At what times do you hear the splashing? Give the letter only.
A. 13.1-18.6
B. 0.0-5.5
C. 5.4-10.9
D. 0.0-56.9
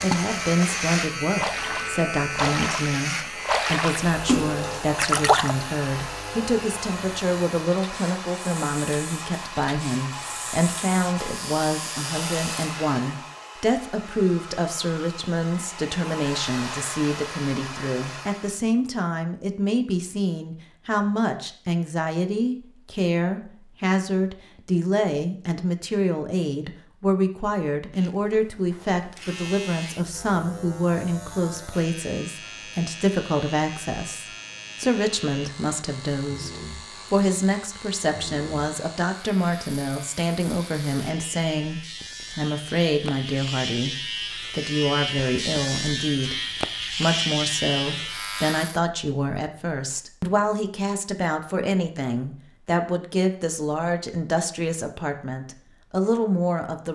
B.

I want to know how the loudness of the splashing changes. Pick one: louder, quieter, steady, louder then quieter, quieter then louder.
louder.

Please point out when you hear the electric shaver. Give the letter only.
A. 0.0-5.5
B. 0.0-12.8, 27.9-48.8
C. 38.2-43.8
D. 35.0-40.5
B.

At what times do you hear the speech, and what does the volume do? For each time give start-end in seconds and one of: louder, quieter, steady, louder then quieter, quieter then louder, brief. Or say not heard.
0.0-56.9 steady.